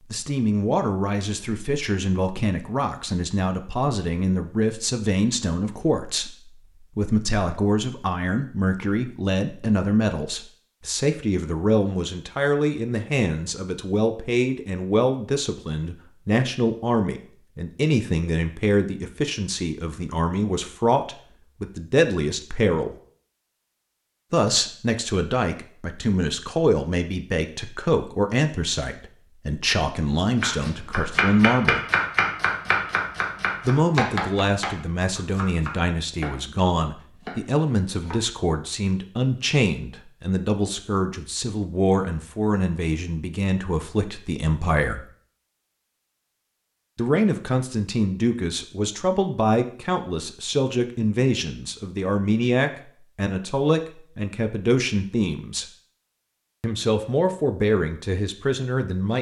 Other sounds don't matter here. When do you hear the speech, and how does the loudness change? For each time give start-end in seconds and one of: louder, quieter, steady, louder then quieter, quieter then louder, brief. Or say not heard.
0.0-22.9 steady
24.3-31.9 steady
33.6-45.0 steady
47.0-55.6 steady
56.6-59.1 brief.